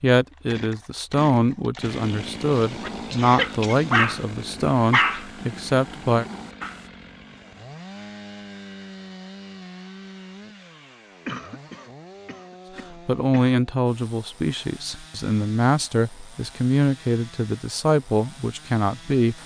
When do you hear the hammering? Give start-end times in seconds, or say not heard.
not heard.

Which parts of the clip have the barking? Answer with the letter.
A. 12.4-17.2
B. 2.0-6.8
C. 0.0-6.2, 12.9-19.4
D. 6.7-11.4
B.